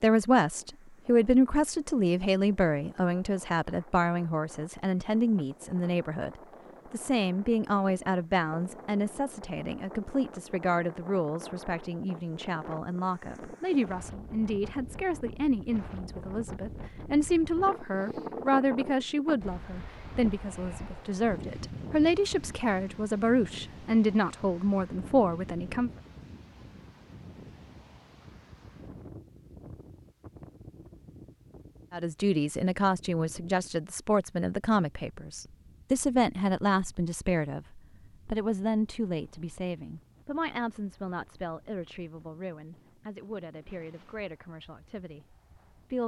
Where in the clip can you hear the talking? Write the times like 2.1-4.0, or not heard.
0.0-25.9, 31.9-46.0.